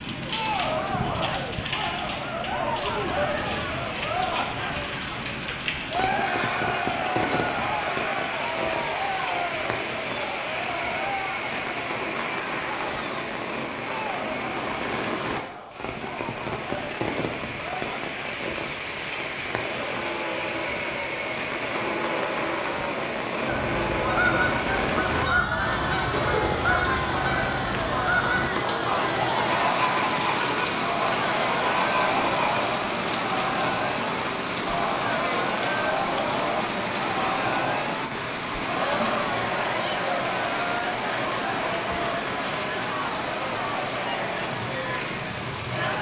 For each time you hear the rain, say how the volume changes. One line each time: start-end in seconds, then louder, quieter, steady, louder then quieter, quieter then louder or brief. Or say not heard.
0.0-45.9 steady.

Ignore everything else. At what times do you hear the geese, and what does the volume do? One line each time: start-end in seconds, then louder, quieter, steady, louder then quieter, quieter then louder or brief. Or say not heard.
23.4-32.6 steady.